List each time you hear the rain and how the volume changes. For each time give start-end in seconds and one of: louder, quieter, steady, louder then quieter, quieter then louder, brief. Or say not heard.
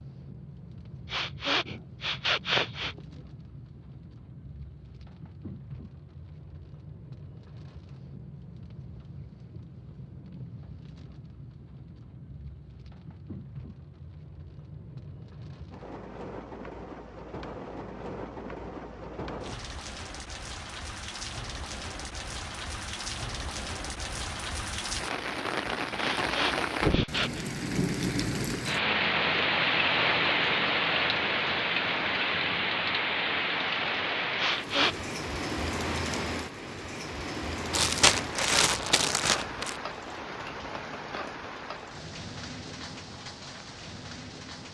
0.0-44.6 louder then quieter.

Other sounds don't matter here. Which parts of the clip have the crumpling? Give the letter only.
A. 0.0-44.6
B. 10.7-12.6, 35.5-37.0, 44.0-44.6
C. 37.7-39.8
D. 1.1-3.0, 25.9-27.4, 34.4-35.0
C.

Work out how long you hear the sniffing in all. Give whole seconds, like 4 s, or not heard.
4 s.